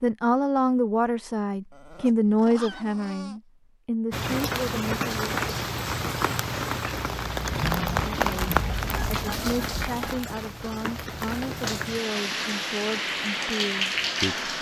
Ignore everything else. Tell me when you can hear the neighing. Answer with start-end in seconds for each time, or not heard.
not heard.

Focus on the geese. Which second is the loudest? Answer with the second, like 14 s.
8 s.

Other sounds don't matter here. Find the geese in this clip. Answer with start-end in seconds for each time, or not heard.
7.5-10.2.